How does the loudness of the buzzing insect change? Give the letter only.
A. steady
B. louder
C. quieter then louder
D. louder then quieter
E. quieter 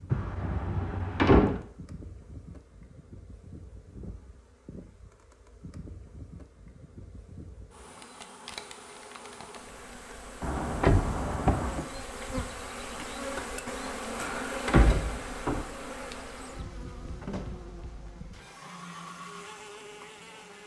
D.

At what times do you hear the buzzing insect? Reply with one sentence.
The buzzing insect can be heard from 0.0 to 20.6 s.